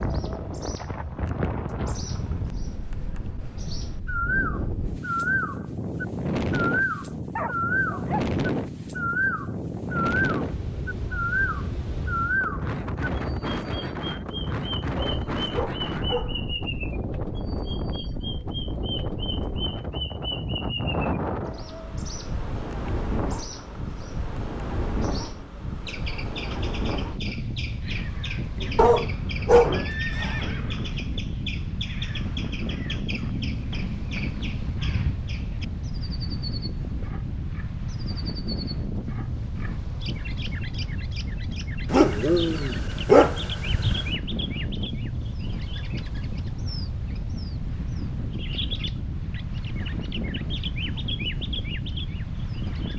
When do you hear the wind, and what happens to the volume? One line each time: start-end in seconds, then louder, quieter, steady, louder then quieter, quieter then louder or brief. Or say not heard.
0.0-52.9 steady.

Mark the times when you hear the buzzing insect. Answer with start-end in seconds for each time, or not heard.
not heard.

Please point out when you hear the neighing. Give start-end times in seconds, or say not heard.
29.7-30.9.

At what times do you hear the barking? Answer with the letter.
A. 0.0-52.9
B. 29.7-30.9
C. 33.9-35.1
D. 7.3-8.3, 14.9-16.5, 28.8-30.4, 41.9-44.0
D.